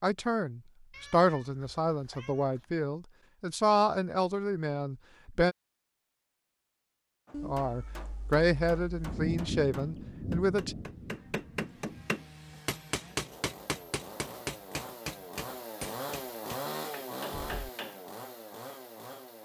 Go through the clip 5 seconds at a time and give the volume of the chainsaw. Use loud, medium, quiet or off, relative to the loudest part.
off, off, medium, loud.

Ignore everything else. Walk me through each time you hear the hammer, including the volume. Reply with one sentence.
You can hear the hammer from 7.2 to 18.0 s, getting louder then quieter.